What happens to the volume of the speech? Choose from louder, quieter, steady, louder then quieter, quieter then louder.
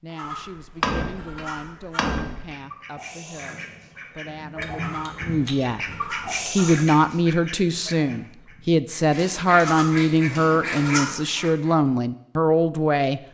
louder.